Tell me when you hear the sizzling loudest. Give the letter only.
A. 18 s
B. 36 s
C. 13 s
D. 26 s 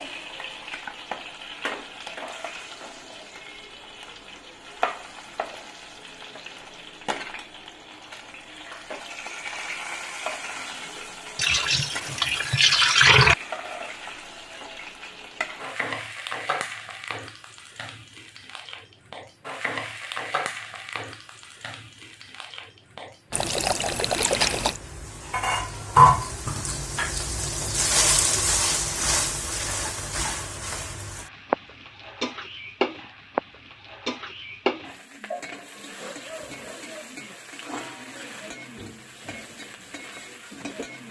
D.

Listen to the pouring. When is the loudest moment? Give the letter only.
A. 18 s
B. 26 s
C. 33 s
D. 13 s
D.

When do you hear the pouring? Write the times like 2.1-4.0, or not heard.
11.3-13.3, 23.3-24.8.